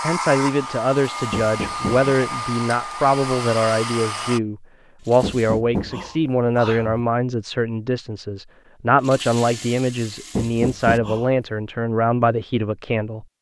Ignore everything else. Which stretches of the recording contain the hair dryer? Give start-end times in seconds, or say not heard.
0.0-4.4.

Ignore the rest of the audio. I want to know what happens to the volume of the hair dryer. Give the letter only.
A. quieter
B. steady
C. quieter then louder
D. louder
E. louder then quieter
B.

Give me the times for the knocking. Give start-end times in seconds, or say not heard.
1.3-2.1, 5.2-7.0, 10.3-11.3.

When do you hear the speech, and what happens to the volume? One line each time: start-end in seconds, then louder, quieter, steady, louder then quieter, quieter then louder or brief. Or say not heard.
0.0-13.2 steady.